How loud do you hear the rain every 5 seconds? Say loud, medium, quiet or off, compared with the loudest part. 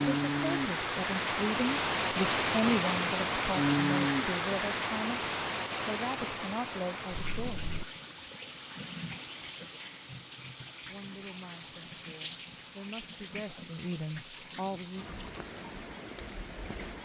loud, medium, quiet, quiet.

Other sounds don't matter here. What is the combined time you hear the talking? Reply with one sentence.
You can hear the talking for 12 seconds altogether.